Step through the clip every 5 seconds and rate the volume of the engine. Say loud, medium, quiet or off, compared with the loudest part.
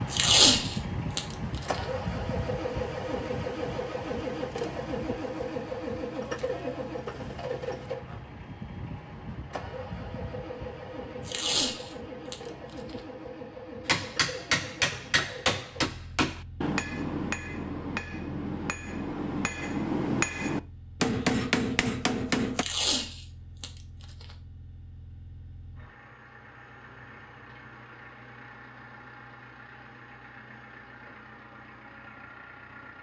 loud, loud, medium, quiet, quiet, quiet, quiet.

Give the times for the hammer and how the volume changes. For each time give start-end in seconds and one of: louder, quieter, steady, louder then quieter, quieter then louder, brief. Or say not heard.
13.8-22.6 quieter then louder.